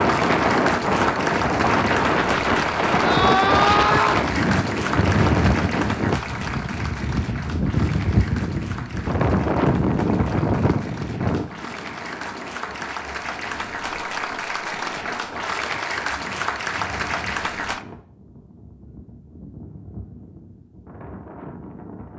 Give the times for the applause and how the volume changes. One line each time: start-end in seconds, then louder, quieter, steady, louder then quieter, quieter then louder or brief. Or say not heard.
0.0-17.9 quieter then louder.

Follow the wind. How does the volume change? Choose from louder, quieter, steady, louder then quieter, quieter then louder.
quieter.